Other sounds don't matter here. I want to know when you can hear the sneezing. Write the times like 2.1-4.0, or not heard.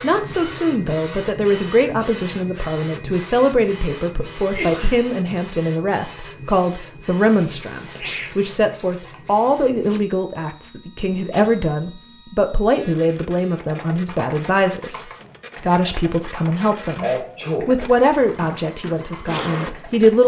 4.5-5.0, 7.3-9.2, 17.0-17.7.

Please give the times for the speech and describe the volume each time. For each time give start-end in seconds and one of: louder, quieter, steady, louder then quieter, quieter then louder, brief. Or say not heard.
0.0-20.2 steady.